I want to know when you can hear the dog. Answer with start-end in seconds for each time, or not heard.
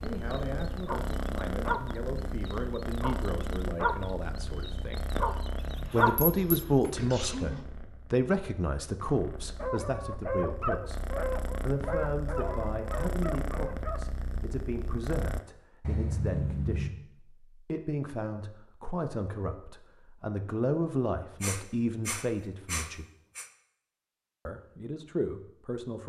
0.1-6.2, 9.6-14.0.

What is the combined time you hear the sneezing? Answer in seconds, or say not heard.
3 s.